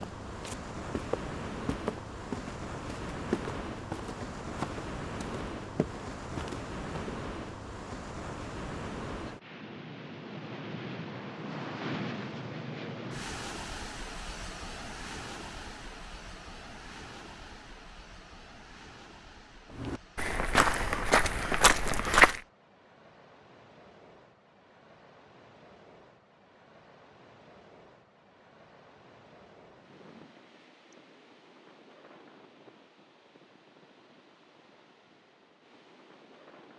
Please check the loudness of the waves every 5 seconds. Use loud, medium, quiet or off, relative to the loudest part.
loud, loud, loud, medium, quiet, quiet, quiet, quiet.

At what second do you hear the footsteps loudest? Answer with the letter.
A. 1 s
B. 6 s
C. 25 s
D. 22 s
D.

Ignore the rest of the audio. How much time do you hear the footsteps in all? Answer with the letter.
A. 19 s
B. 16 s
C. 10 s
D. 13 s
C.